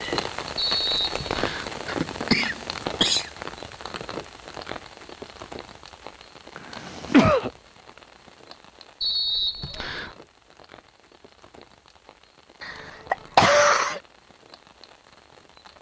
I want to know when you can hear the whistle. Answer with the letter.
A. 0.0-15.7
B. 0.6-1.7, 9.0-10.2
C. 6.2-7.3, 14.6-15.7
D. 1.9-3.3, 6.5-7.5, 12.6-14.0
B.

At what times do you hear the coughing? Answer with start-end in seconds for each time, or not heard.
1.9-3.3, 6.5-7.5, 12.6-14.0.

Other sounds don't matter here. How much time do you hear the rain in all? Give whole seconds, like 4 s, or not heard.
16 s.